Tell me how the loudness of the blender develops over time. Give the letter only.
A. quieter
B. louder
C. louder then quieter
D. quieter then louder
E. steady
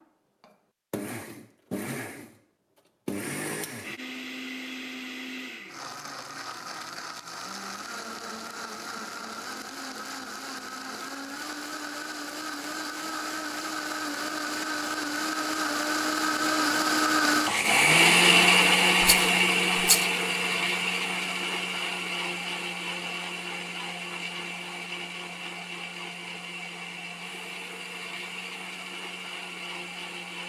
C.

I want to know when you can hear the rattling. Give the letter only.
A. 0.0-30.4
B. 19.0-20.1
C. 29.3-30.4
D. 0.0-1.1
B.